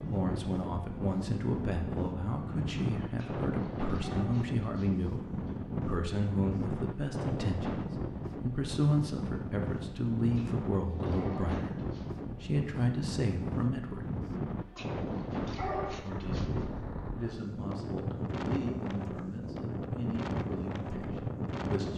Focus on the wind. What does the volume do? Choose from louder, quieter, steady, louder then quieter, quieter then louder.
steady.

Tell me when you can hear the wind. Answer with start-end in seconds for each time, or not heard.
0.0-21.9.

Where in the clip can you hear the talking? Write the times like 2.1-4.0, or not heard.
0.1-14.1, 16.0-21.9.